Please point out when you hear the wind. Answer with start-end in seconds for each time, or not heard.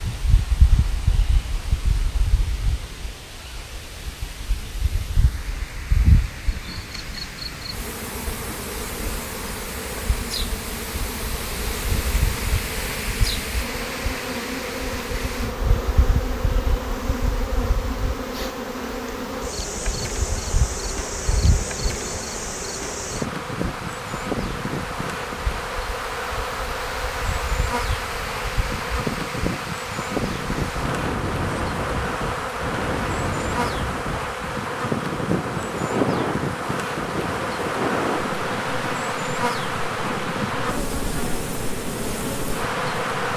0.0-43.3.